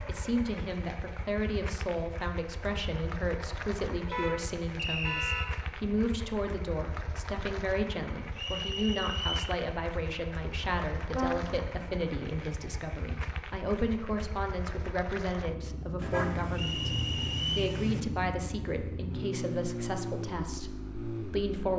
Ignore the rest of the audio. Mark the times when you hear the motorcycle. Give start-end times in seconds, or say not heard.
0.0-21.7.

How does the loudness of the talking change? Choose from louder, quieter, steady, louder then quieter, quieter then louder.
steady.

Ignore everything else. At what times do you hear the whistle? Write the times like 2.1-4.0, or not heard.
4.8-5.5, 8.3-9.5, 16.6-17.8.